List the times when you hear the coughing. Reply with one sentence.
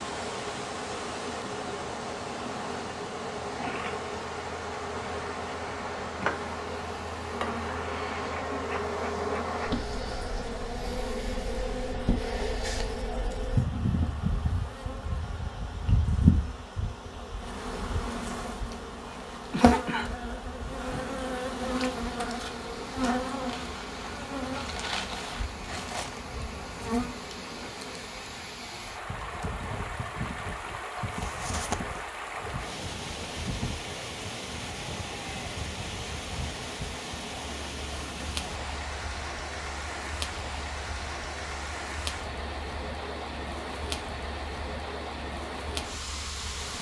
You can hear the coughing from 18.7 to 20.1 s and from 31.1 to 32.0 s.